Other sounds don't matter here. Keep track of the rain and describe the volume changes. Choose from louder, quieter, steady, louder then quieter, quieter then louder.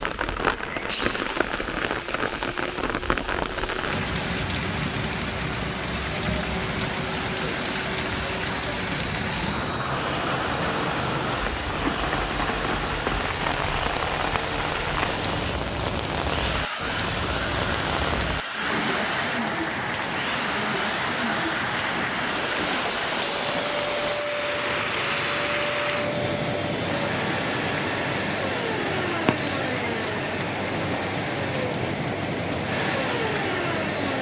steady.